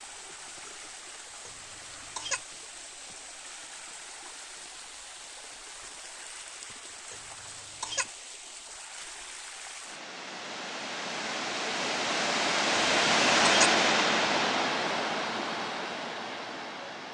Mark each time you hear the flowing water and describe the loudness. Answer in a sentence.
The flowing water can be heard from 0.0 to 17.0 s, getting louder.